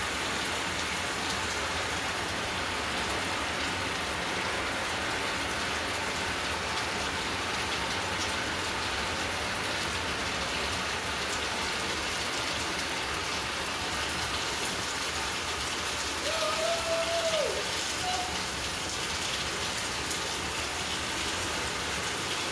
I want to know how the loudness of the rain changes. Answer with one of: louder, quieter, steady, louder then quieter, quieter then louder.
steady.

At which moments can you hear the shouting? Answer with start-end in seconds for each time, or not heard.
16.2-18.2.